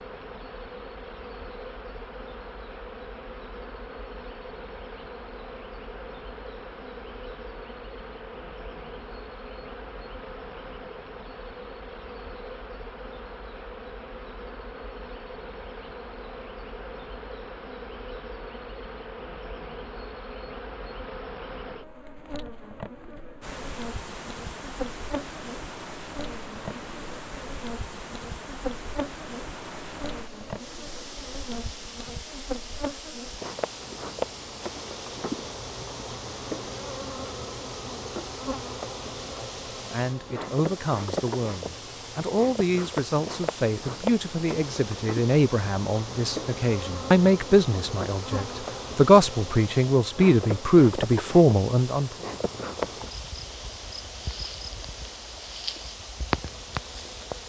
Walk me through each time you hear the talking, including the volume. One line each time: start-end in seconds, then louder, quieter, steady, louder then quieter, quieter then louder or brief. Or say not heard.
39.3-52.1 louder.